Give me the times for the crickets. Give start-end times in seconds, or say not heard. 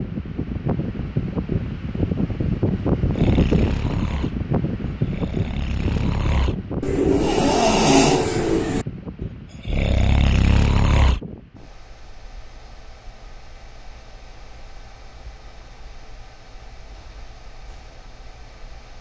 not heard.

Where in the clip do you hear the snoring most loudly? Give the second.
8 s.